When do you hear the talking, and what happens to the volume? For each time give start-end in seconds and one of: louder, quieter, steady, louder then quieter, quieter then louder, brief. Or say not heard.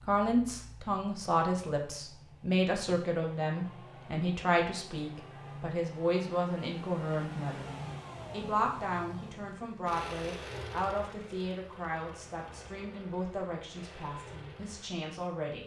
0.1-15.6 quieter.